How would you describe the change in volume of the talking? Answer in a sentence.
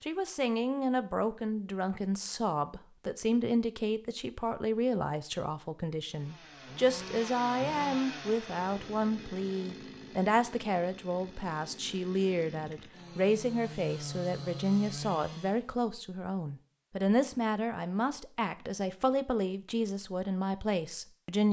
The volume of the talking stays about the same.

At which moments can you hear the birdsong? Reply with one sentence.
You can't hear the birdsong here.